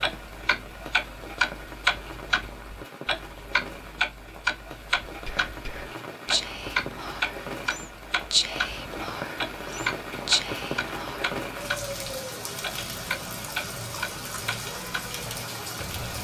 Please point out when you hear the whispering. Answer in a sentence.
The whispering can be heard from 5.0 to 11.3 s.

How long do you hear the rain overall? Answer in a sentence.
The rain can be heard for 16 seconds in total.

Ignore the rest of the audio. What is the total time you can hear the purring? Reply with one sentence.
You can't hear the purring here.